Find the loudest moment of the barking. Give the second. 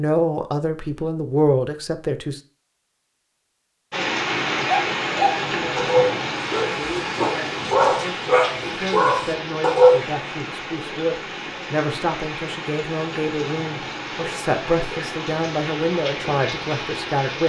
10 s.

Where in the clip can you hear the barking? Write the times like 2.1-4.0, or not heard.
4.7-10.0.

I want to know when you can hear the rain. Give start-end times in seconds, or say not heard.
3.9-17.4.